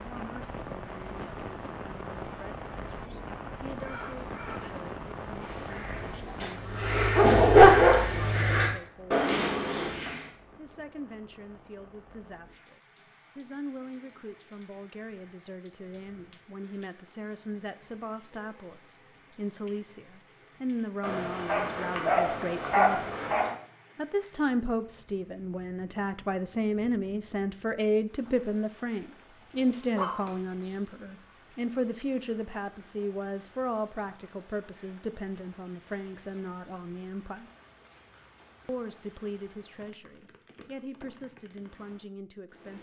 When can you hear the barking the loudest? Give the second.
8 s.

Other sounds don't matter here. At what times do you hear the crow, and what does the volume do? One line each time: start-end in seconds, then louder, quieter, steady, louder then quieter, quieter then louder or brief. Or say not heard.
3.8-10.3 louder.